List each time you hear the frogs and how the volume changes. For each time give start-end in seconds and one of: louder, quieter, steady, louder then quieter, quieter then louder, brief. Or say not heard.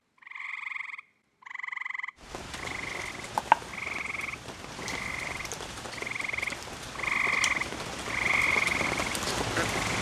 0.2-9.9 louder.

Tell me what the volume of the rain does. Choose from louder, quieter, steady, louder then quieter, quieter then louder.
quieter then louder.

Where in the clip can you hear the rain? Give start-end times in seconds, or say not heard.
2.2-9.9.